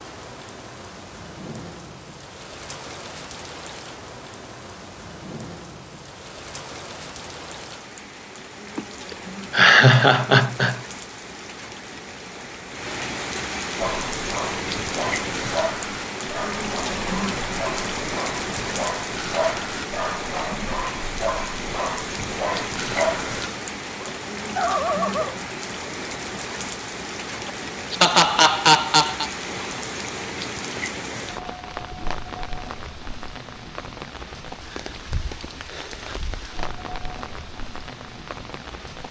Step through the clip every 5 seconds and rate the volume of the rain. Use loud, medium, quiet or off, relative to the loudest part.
medium, medium, loud, loud, loud, loud, medium, medium.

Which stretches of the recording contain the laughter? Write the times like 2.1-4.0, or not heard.
8.8-10.8, 27.4-29.3.